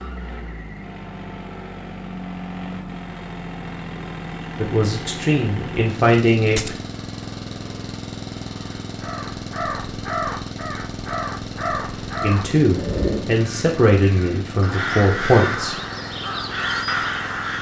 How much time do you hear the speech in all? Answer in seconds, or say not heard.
6 s.